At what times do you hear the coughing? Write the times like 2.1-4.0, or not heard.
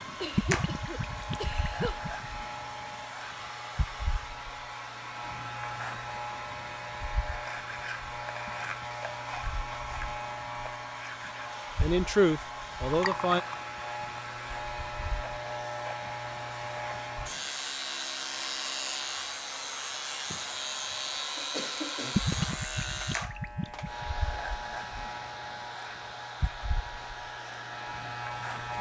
0.2-2.0, 21.4-22.2.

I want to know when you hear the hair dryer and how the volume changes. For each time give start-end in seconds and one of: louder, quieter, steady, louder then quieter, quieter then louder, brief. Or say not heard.
0.0-28.7 steady.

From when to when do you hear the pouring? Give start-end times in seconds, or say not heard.
0.3-2.3, 12.8-13.6, 22.1-24.1.